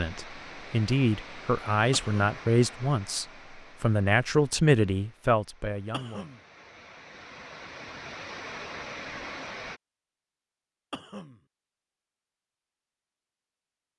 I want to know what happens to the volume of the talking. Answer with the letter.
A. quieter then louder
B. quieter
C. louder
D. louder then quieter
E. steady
E.